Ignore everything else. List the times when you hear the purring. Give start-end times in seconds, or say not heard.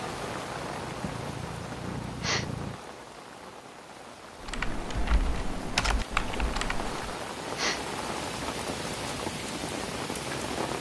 0.0-2.8.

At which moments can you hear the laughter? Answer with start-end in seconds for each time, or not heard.
not heard.